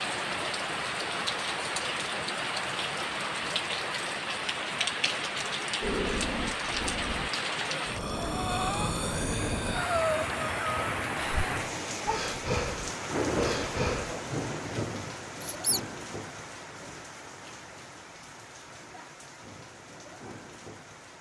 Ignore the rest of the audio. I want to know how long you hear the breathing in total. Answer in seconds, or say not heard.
8 s.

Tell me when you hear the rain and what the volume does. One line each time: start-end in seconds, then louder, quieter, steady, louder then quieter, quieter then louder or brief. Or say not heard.
0.0-21.1 quieter.